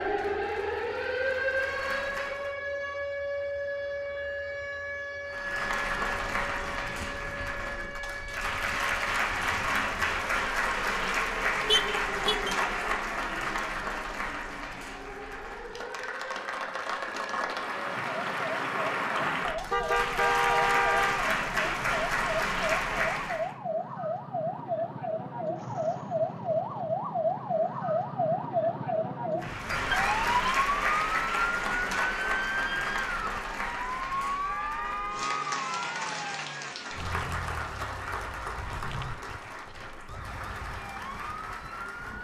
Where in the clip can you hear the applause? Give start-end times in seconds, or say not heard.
0.1-2.5, 5.2-23.6, 29.4-42.1.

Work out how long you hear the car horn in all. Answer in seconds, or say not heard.
4 s.